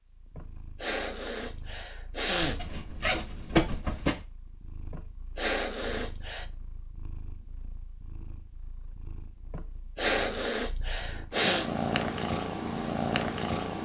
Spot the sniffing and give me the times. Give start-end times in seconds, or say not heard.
0.3-2.6, 4.9-6.5, 9.5-11.7.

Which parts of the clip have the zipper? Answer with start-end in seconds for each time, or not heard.
2.4-4.2.